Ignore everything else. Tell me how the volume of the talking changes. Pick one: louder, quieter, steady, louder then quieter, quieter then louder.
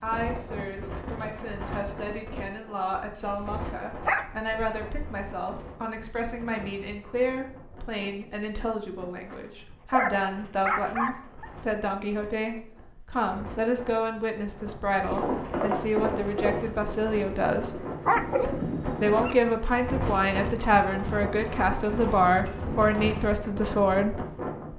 louder.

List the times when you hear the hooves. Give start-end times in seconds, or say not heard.
14.9-23.1.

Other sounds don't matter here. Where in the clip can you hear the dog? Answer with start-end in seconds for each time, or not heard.
3.2-5.2, 9.3-11.4, 18.1-19.1.